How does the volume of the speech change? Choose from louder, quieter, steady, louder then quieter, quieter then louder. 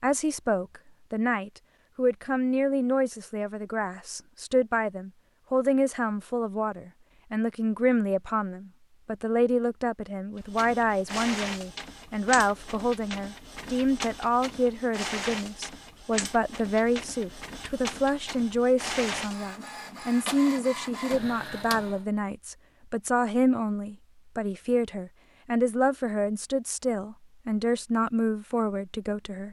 steady.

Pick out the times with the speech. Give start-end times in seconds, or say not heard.
0.0-29.4.